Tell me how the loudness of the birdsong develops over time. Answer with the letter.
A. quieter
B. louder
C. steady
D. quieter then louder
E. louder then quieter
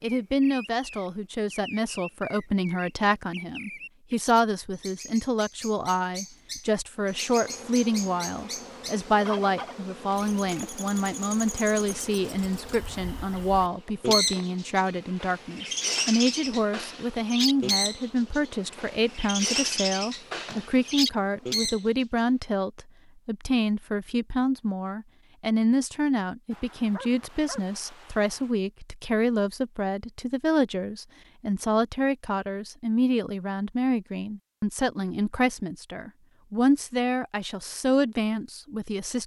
B.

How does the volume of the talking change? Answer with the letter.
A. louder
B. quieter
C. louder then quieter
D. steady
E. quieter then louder
D.